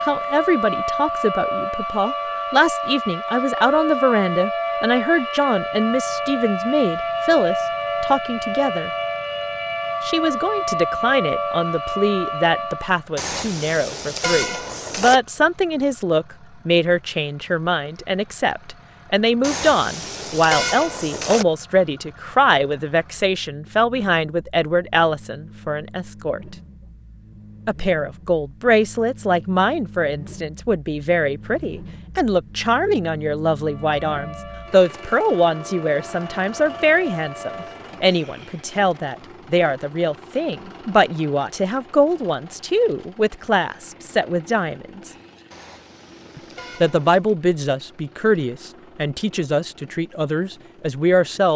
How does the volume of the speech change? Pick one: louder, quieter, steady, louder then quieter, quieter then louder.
steady.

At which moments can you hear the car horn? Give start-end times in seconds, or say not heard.
13.2-15.2, 19.4-21.4, 45.5-47.1.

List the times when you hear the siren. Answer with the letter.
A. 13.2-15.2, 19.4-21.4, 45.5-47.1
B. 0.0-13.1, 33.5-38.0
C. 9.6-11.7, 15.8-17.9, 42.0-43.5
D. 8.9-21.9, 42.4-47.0
B.